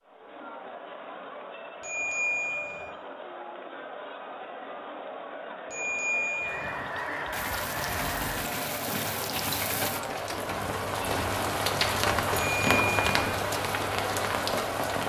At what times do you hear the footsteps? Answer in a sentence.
The footsteps can't be heard in this clip.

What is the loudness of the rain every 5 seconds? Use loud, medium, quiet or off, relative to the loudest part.
off, medium, loud.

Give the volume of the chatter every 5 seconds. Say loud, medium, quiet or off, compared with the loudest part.
medium, loud, loud.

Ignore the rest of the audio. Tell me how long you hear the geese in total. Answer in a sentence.
The geese can be heard for 2 seconds in total.